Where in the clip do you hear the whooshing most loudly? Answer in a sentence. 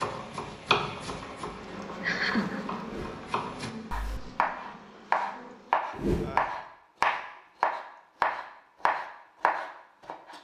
The loudest moment of the whooshing is at 6 seconds.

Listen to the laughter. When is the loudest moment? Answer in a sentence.
The volume of the laughter peaks at 2 seconds.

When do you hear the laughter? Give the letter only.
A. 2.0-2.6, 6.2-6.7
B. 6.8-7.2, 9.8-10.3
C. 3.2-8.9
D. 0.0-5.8
A.